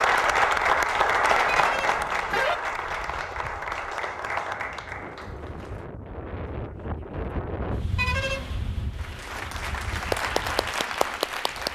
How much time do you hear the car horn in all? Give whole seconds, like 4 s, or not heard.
2 s.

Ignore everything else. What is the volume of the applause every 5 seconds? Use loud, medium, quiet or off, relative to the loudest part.
loud, quiet, loud.